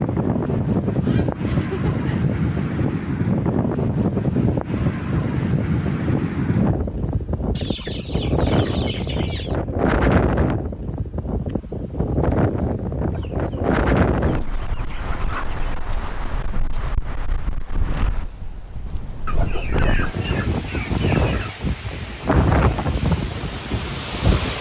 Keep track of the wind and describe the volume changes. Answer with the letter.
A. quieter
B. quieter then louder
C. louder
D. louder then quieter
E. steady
B.